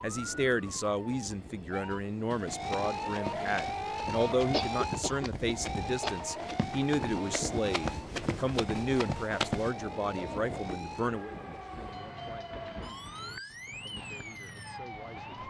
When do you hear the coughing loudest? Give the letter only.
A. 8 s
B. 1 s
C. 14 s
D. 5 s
D.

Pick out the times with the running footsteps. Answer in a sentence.
The running footsteps can be heard from 2.5 to 9.8 s.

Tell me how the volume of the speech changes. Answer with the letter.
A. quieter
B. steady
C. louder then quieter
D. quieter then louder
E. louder
A.